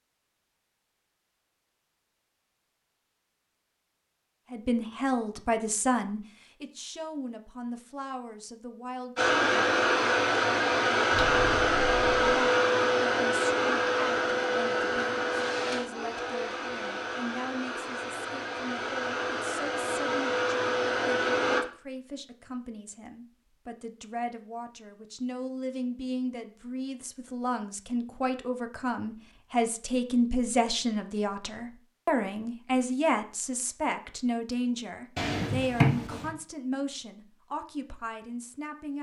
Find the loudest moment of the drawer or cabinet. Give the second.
36 s.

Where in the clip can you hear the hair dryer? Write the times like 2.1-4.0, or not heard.
9.2-21.6.